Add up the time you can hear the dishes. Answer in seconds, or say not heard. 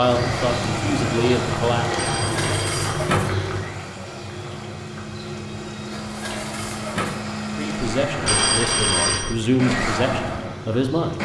3 s.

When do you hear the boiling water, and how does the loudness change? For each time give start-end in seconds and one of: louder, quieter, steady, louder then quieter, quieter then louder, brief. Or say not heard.
0.0-11.2 quieter.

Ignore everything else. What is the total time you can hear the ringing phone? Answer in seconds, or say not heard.
2 s.